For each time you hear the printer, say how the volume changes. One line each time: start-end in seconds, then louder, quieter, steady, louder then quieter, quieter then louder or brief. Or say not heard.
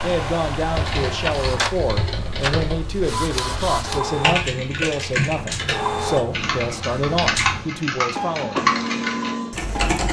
0.0-10.0 steady.